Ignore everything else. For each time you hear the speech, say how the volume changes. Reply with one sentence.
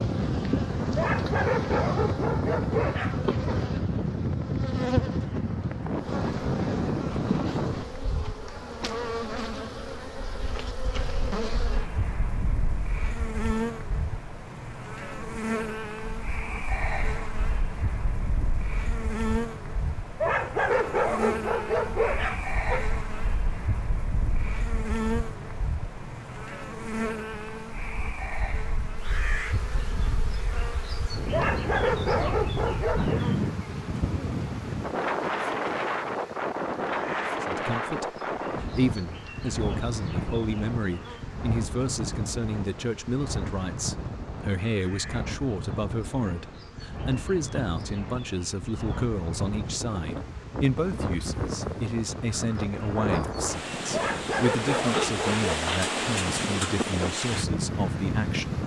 You can hear the speech from 37.4 to 58.6 s, at a steady volume.